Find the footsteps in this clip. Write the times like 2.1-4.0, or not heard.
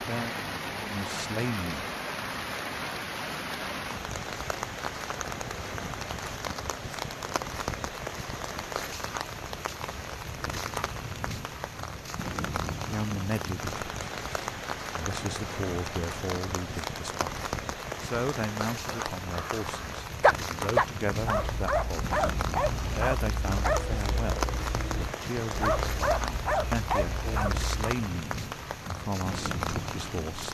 not heard.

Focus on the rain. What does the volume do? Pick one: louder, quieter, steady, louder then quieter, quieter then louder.
steady.